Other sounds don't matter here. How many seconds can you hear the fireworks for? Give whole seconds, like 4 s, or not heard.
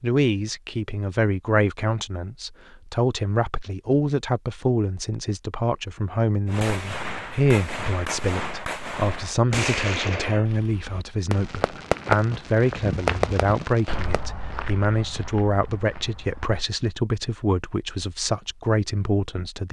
8 s.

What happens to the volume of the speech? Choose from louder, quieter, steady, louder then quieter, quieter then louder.
steady.